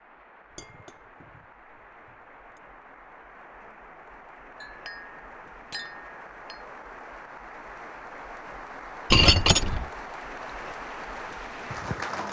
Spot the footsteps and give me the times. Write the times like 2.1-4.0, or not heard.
not heard.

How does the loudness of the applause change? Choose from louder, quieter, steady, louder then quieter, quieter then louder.
louder.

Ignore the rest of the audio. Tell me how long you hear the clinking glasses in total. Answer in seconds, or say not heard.
5 s.